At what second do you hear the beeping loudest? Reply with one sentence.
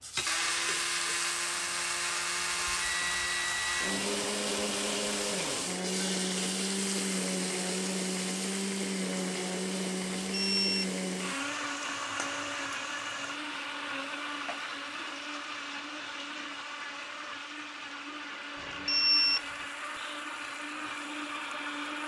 The volume of the beeping peaks at 19 seconds.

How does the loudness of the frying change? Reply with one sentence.
The volume of the frying goes down.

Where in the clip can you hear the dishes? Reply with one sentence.
The dishes can't be heard in this clip.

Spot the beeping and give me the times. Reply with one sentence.
The beeping can be heard from 2.5 to 4.0 s, from 10.3 to 10.8 s and from 18.6 to 19.4 s.